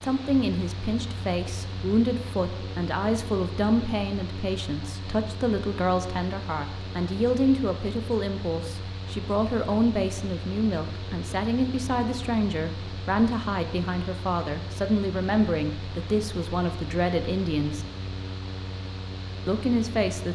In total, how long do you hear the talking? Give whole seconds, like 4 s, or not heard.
19 s.